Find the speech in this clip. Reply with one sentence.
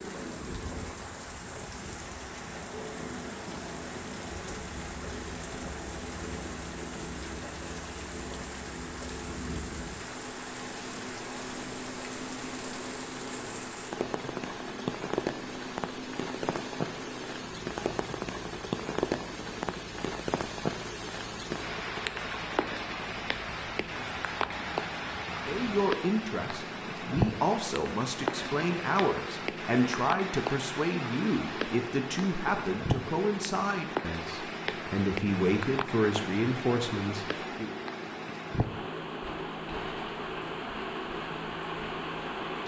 You can hear the speech from 25.4 to 37.7 s.